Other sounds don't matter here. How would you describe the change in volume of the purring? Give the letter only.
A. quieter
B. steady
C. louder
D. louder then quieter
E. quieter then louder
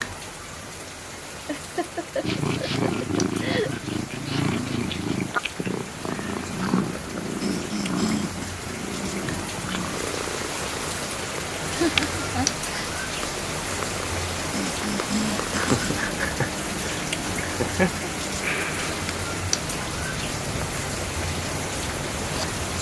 A.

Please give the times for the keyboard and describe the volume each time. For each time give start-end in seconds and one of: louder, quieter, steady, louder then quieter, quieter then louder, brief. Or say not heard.
not heard.